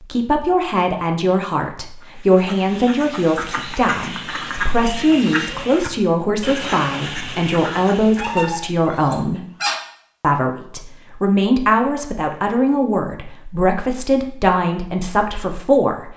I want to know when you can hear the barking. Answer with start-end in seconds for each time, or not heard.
8.2-9.8.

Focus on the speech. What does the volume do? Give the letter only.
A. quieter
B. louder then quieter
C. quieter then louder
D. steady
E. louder
D.